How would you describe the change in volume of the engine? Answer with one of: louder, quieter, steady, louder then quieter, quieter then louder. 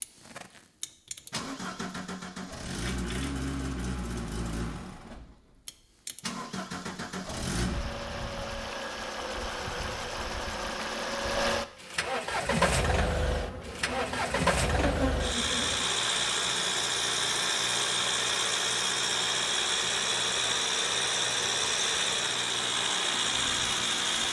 louder.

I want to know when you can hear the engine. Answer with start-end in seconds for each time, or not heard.
0.0-24.2.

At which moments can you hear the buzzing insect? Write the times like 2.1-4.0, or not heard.
12.3-24.2.